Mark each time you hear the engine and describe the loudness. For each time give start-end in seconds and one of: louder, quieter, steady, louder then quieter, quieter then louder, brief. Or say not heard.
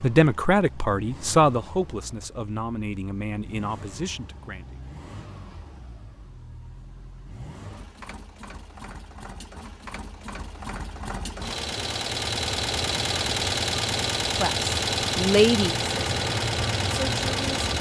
0.0-17.7 louder.